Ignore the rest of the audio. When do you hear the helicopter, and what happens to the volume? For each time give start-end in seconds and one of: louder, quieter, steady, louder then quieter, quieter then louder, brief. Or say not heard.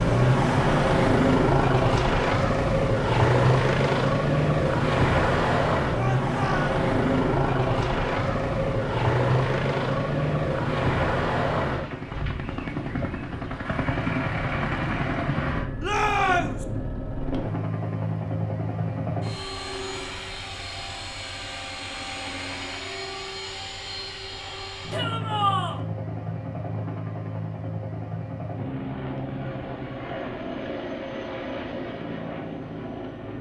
0.0-33.3 quieter.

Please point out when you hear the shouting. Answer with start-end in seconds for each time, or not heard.
6.0-6.8, 15.8-16.6, 24.9-25.8.